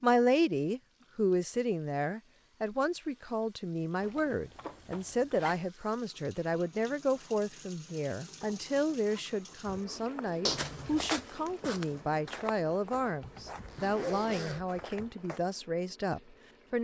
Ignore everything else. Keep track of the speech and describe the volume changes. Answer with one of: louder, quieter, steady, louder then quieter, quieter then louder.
steady.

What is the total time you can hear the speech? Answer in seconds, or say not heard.
17 s.